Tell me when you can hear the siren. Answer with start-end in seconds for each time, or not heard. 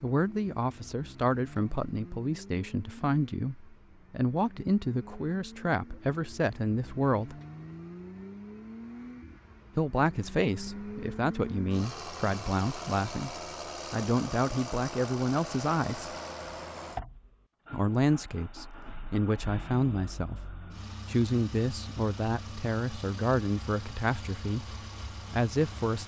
not heard.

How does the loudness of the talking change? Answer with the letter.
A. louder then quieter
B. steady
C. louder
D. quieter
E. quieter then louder
B.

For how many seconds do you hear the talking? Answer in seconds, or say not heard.
22 s.